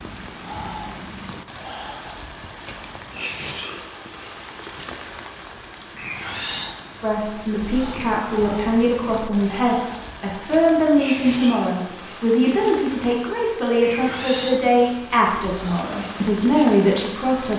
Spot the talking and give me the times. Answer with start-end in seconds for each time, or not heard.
7.0-17.5.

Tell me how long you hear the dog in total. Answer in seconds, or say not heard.
not heard.